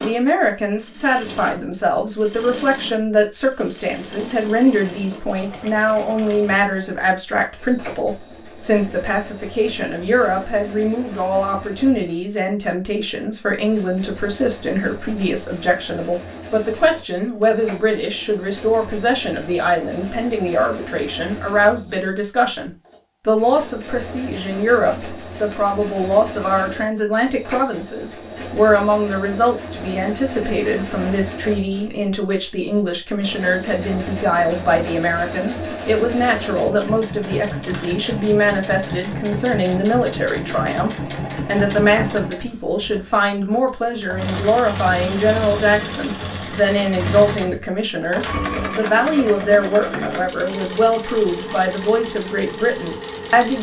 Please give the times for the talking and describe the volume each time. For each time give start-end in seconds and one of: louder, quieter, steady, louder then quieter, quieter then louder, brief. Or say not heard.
0.0-53.5 steady.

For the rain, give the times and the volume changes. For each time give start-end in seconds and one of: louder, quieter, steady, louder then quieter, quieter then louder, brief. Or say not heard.
not heard.